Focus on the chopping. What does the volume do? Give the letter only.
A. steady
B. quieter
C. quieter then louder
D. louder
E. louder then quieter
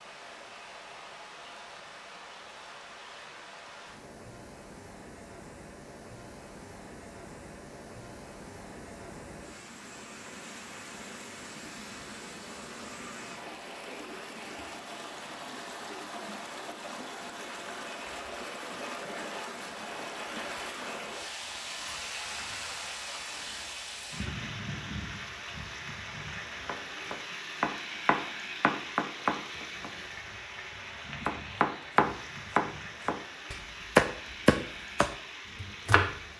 E.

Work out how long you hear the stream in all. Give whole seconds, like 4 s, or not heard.
36 s.